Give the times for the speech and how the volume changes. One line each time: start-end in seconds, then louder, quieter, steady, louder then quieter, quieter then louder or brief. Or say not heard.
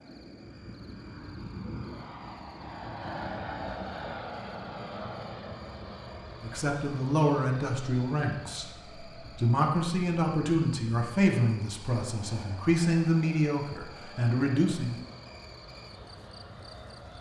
6.4-15.1 steady.